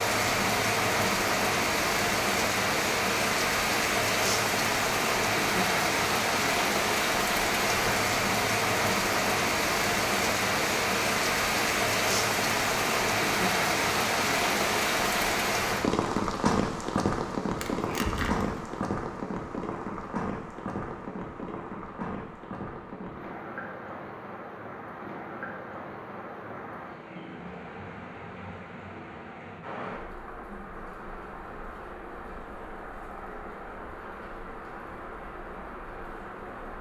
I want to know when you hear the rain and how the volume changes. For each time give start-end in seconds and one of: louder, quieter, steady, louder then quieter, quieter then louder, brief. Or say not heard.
0.0-36.7 quieter.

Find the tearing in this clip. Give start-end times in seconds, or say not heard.
17.6-18.7.